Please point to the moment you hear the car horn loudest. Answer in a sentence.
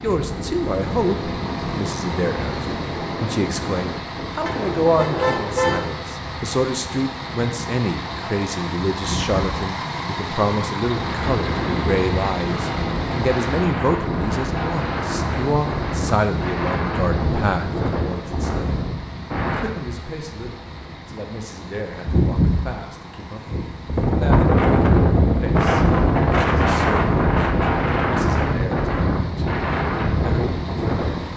The volume of the car horn peaks at 6 seconds.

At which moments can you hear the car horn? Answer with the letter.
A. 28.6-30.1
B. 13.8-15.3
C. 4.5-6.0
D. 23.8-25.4
C.